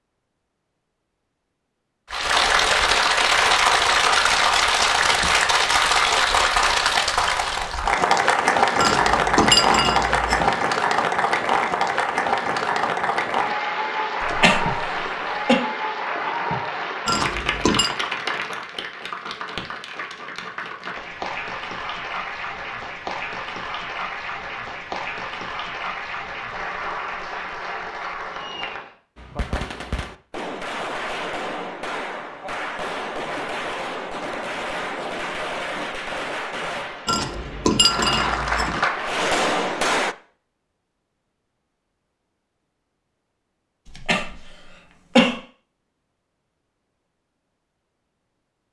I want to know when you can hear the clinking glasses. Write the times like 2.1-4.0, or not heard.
8.8-10.6, 17.1-17.9, 37.0-38.8.